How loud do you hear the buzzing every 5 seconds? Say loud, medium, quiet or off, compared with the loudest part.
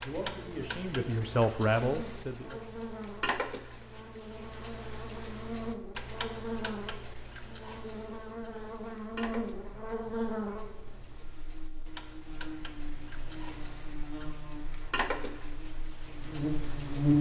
quiet, medium, medium, loud.